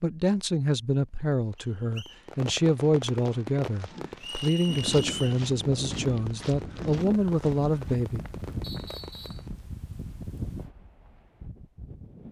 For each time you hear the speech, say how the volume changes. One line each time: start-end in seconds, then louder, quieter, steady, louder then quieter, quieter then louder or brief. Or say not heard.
0.0-8.2 steady.